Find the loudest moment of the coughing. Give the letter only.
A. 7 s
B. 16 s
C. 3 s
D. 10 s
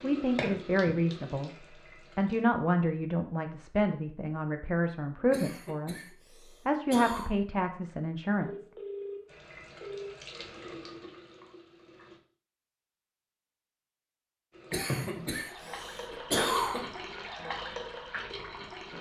B.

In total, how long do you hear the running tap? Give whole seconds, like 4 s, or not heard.
10 s.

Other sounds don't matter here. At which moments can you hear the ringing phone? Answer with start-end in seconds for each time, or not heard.
8.4-10.2.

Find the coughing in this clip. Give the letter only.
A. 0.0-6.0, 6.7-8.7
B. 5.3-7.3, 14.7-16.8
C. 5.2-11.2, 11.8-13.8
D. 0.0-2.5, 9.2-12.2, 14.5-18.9
B.